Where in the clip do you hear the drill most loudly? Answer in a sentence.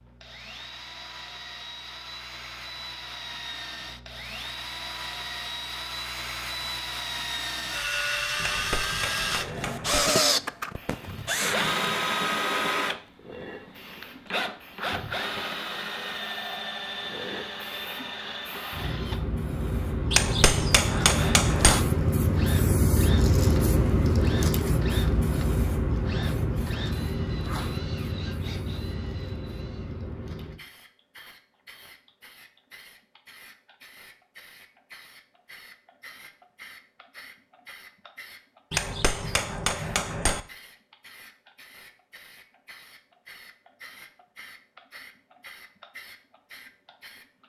The loudest moment of the drill is at 10 seconds.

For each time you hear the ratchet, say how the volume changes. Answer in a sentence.
The ratchet can't be heard in this clip.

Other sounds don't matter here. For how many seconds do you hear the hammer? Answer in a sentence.
You can hear the hammer for 5 seconds altogether.